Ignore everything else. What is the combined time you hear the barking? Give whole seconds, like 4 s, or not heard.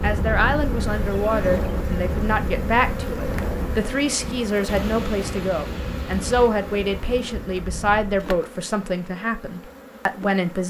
not heard.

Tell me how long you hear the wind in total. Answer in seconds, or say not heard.
8 s.